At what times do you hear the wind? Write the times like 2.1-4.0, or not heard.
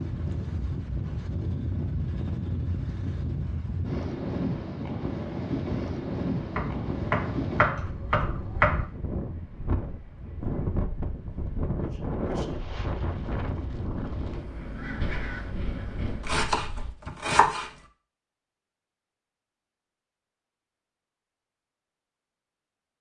0.0-16.9.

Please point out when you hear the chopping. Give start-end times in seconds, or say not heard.
6.5-8.8, 16.2-17.7.